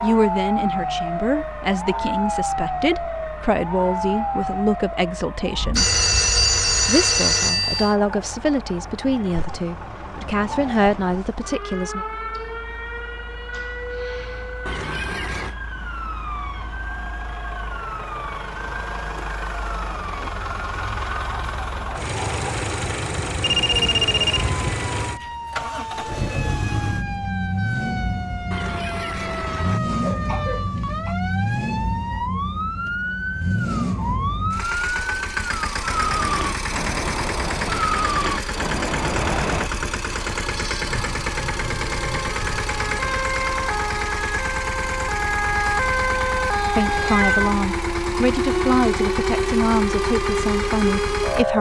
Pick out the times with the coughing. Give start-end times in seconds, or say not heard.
14.7-15.6, 28.5-31.1.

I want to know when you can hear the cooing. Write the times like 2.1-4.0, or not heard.
not heard.